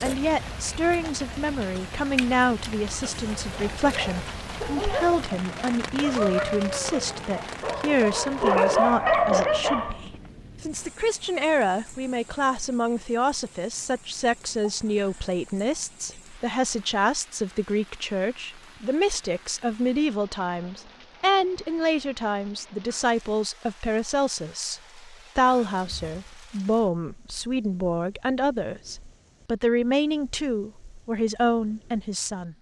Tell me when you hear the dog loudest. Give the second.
9 s.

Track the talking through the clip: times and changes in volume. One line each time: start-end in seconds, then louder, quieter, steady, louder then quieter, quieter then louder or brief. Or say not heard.
0.0-32.5 steady.